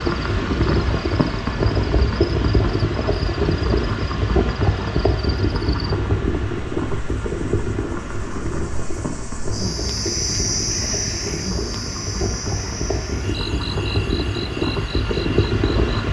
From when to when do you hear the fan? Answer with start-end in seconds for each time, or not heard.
0.0-16.0.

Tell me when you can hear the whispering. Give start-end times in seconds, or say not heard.
not heard.